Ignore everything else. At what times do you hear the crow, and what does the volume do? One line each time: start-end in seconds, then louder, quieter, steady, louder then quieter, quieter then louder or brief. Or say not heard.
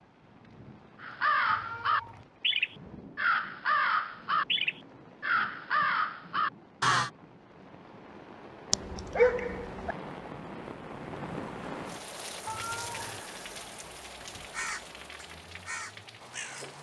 1.0-7.1 steady
14.5-16.7 brief.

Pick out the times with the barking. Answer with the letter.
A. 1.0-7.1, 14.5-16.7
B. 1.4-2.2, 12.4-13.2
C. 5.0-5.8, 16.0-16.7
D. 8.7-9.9
D.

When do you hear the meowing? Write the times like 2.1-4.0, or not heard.
1.4-2.2, 12.4-13.2.